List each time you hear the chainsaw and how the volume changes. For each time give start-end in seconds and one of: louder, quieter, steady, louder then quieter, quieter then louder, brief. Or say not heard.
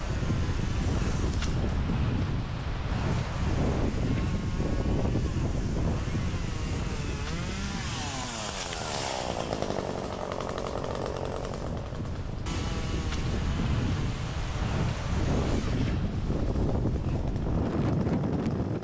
0.0-18.7 louder then quieter.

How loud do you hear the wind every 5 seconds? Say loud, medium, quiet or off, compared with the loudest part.
loud, medium, medium, loud.